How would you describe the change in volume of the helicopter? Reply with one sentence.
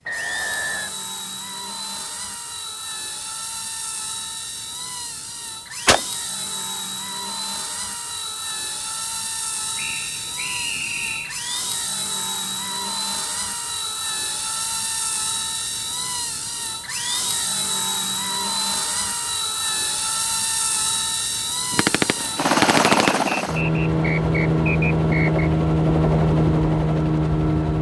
The loudness of the helicopter goes up.